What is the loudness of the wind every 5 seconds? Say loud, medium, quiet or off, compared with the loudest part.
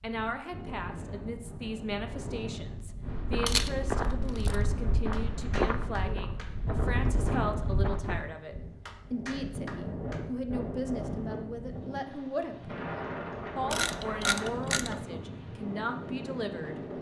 medium, loud, loud, loud.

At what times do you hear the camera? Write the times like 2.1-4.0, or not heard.
3.5-4.5, 13.7-14.9.